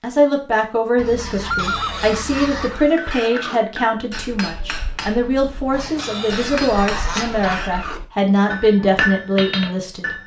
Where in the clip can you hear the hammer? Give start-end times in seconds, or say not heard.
2.8-10.2.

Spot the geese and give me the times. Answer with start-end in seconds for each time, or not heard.
0.9-2.8, 5.7-7.7.